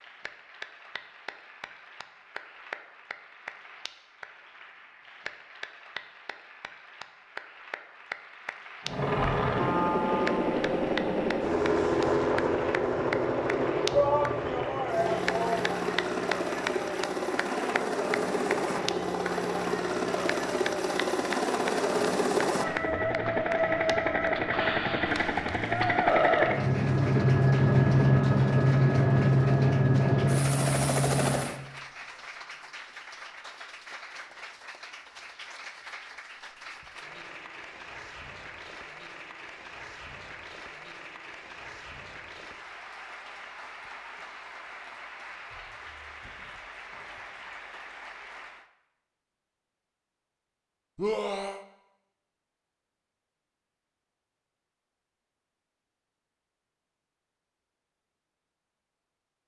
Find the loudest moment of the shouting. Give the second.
14 s.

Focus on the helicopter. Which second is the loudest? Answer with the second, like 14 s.
28 s.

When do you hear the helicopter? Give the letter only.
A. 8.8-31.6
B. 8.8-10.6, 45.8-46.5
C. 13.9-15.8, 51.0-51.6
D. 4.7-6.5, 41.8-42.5
A.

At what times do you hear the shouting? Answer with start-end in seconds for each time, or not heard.
13.9-15.8, 51.0-51.6.